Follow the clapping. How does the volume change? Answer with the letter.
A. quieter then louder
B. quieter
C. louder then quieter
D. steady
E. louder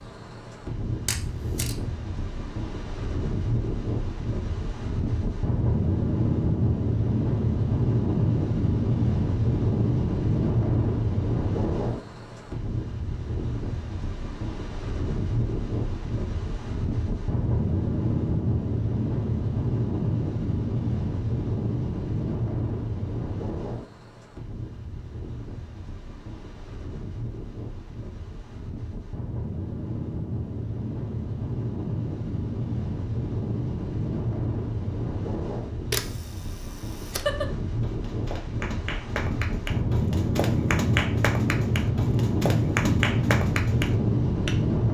E.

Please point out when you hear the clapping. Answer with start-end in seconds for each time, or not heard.
37.1-44.6.